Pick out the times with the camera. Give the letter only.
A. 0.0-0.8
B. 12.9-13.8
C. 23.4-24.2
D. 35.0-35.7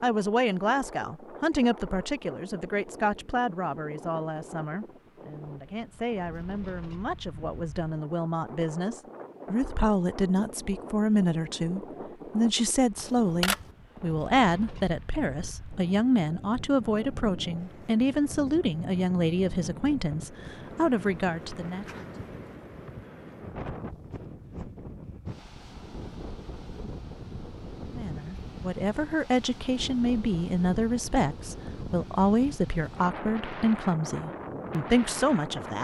B.